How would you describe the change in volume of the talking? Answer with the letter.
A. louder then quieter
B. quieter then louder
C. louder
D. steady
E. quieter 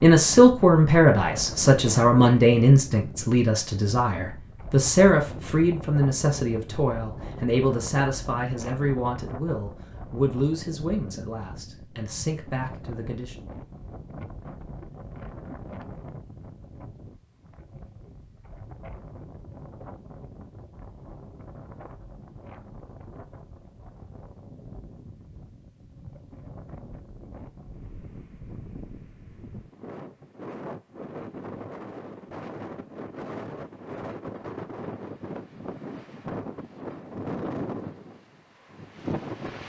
E.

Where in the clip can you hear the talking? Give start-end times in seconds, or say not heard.
0.0-13.3.